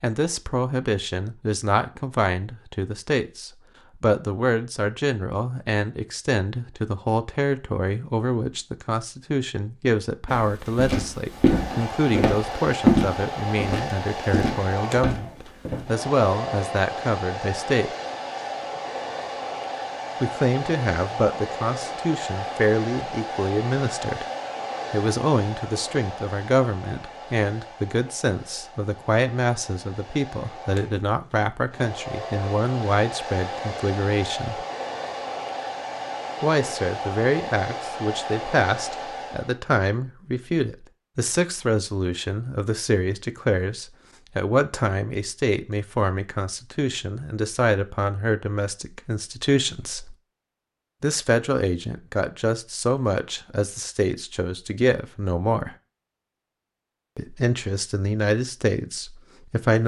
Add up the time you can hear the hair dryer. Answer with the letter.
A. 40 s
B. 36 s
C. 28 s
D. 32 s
C.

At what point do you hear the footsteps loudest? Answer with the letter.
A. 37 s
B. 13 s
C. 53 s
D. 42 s
B.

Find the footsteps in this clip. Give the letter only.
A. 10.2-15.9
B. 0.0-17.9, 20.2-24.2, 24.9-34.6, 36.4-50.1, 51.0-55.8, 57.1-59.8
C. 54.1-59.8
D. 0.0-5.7
A.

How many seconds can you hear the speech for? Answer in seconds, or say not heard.
53 s.